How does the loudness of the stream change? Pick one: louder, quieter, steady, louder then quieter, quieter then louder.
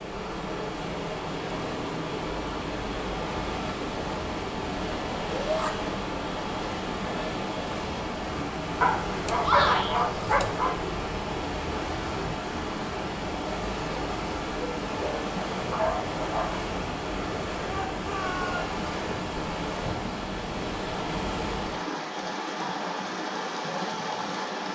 steady.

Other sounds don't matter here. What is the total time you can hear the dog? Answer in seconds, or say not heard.
4 s.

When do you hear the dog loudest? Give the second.
10 s.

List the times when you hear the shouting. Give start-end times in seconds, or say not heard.
5.3-5.7, 9.4-10.0, 17.6-18.8.